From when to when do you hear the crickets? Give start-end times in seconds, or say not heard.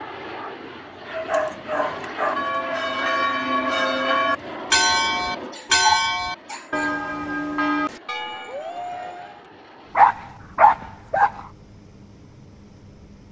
not heard.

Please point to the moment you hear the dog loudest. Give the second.
10 s.